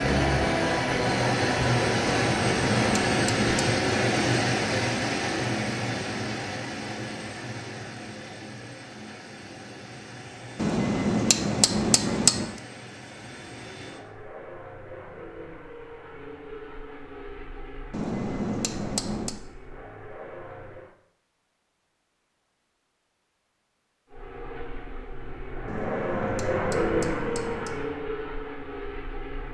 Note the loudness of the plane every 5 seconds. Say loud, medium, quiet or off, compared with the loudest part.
loud, medium, quiet, quiet, quiet, medium.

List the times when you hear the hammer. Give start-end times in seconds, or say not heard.
2.2-3.8, 10.6-12.6, 17.9-19.4, 25.6-27.8.